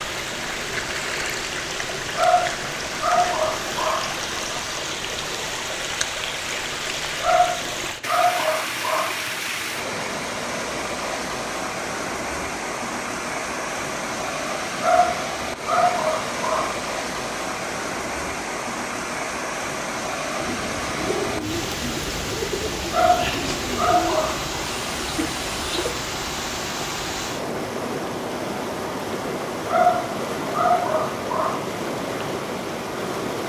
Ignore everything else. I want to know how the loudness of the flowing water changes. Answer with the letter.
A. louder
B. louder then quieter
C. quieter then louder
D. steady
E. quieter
D.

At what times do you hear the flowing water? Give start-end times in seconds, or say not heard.
0.0-33.4.